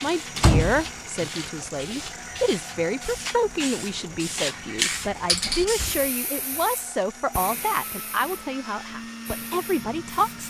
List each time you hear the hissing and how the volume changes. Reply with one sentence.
The hissing can be heard from 0.0 to 10.4 s, getting louder then quieter.